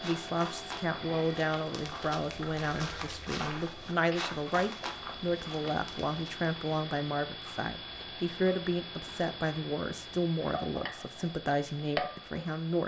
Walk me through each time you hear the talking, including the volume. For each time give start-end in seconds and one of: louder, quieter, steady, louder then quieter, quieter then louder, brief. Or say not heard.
0.0-12.8 steady.